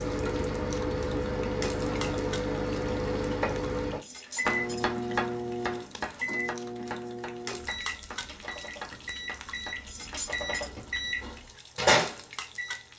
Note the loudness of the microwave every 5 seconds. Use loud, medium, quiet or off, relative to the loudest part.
loud, medium, loud.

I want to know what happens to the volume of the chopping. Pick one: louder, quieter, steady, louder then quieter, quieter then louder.
quieter.